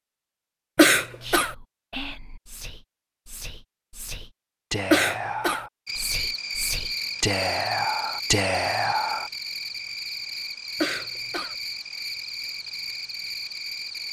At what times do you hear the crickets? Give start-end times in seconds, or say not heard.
5.8-14.0.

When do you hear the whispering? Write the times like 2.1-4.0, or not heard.
1.2-9.3.